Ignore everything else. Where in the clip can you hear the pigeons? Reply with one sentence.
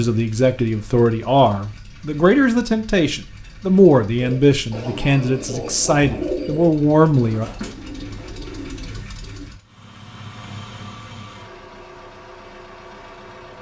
The pigeons can be heard from 4.2 to 9.4 s.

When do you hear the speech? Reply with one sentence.
The speech can be heard from 0.0 to 7.5 s.